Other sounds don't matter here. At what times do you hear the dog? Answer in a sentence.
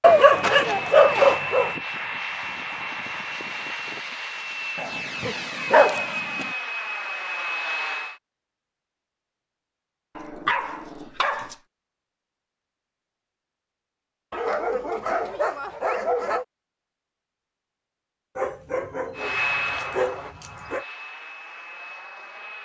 You can hear the dog from 0.0 to 1.8 s, from 4.8 to 6.5 s, from 10.2 to 11.6 s, from 14.3 to 16.4 s and from 18.4 to 20.9 s.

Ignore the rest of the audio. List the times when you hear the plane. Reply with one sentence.
You can hear the plane from 0.0 to 8.2 s and from 19.1 to 22.5 s.